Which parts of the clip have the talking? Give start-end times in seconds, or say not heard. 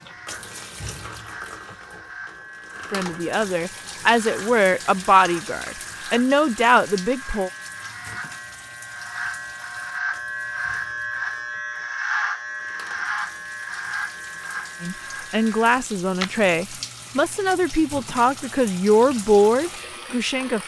2.9-7.5, 14.8-20.6.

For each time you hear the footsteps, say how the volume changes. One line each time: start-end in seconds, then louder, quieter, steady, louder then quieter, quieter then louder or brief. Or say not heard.
not heard.